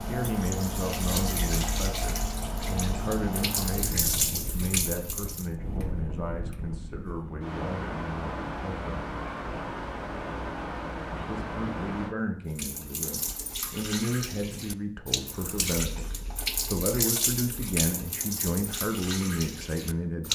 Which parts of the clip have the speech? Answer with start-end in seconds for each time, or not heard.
0.1-9.1, 11.2-20.3.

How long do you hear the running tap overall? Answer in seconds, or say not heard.
13 s.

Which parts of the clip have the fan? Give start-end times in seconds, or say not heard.
0.0-12.2.